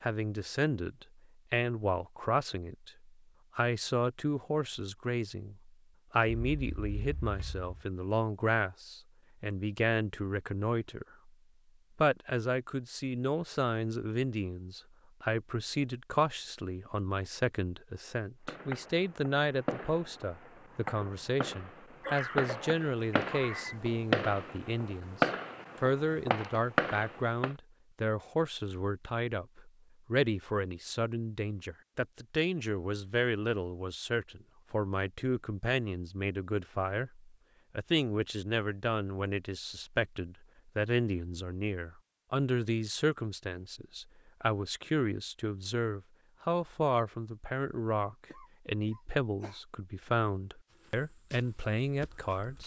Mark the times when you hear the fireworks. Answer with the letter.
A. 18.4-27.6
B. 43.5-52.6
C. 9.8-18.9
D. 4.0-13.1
A.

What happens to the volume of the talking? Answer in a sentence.
The volume of the talking stays about the same.